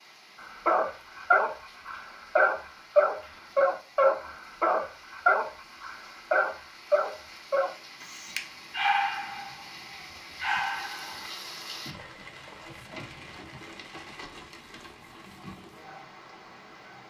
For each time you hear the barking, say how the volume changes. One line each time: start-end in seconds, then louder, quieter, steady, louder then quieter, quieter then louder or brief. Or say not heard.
0.7-9.7 quieter
10.4-11.2 brief.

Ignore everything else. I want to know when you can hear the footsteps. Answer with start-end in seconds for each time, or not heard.
not heard.